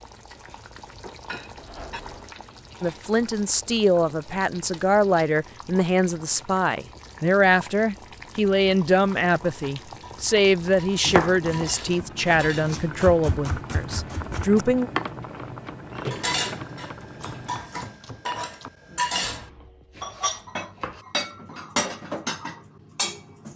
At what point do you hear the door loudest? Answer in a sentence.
The loudest moment of the door is at 16 seconds.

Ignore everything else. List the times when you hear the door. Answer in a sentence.
You can hear the door from 1.6 to 2.4 s and from 15.9 to 16.8 s.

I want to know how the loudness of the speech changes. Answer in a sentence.
The volume of the speech stays about the same.